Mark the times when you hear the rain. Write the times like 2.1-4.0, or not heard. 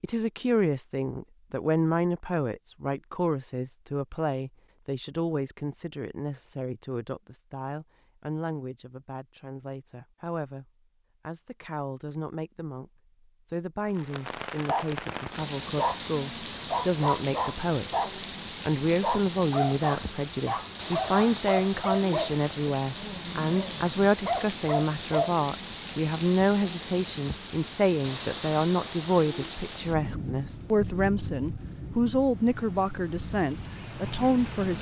13.8-34.7.